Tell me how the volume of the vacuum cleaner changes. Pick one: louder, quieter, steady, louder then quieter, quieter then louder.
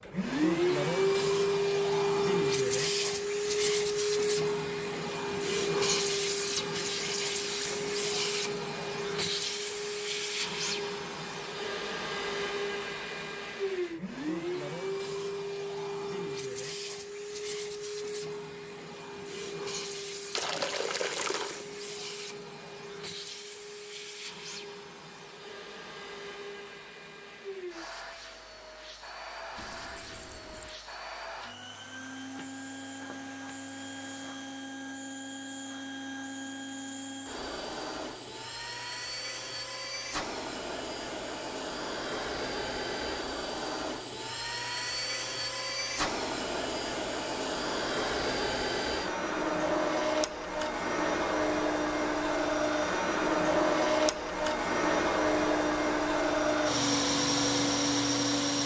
quieter then louder.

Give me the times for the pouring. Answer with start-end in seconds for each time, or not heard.
20.4-21.6, 29.6-30.8.